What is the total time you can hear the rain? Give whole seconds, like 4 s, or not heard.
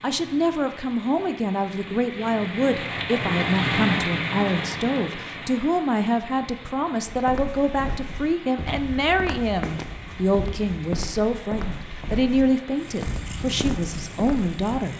15 s.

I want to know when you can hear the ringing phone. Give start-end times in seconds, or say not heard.
not heard.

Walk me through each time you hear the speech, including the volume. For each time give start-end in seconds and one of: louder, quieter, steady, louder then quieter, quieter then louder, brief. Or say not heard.
0.0-14.9 steady.